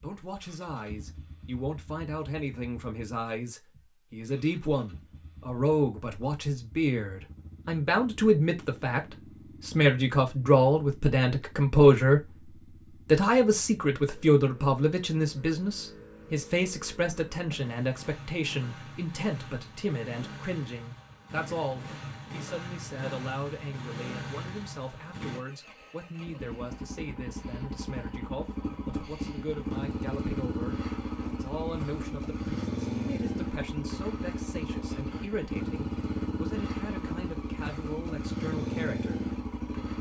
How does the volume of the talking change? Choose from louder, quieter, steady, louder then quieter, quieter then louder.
louder then quieter.